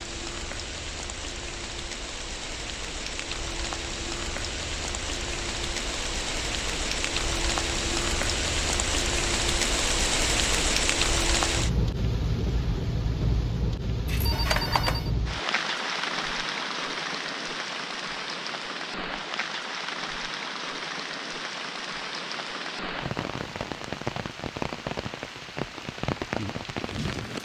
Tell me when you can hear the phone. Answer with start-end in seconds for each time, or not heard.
14.1-15.1.